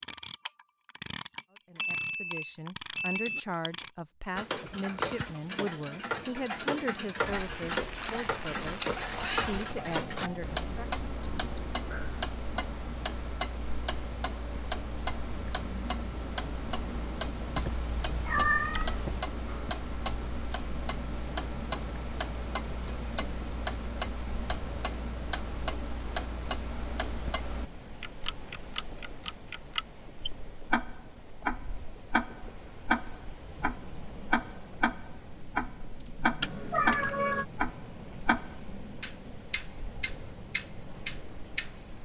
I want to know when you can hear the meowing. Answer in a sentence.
The meowing can be heard from 9.0 to 10.4 s, from 17.6 to 19.2 s and from 36.4 to 37.5 s.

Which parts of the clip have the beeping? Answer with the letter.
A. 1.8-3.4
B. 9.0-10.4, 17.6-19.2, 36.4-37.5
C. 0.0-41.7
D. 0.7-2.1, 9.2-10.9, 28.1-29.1
A.